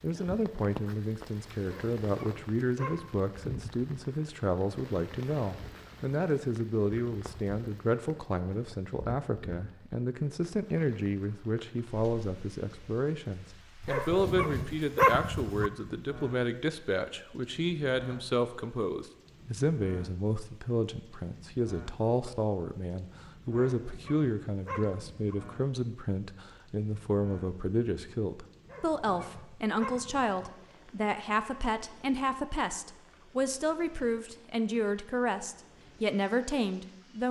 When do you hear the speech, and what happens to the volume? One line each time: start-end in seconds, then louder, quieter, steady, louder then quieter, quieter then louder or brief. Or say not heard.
0.0-37.2 steady.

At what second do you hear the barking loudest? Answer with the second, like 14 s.
15 s.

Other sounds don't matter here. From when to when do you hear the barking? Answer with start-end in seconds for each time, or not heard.
1.6-3.2, 13.8-15.7, 23.6-25.4, 28.6-30.5.